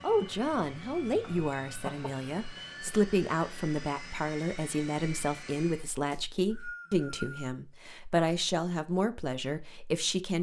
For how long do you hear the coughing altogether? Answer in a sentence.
The coughing can be heard for 2 seconds in total.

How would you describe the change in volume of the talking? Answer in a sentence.
The loudness of the talking stays about the same.